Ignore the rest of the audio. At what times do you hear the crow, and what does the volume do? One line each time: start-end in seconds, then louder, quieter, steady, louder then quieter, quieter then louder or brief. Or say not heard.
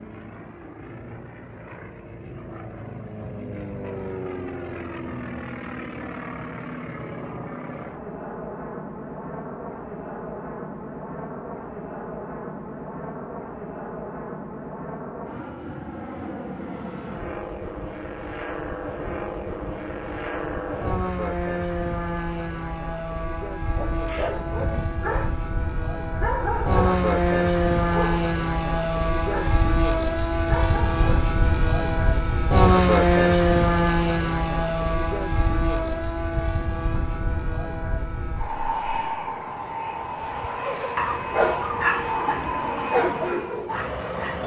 not heard.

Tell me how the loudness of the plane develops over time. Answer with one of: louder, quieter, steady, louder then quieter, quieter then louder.
louder then quieter.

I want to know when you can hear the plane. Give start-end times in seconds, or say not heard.
0.0-44.4.